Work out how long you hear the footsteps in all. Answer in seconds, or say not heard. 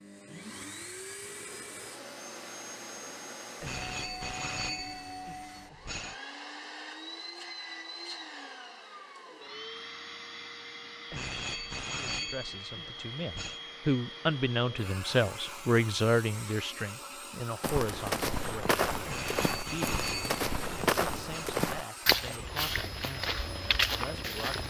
7 s.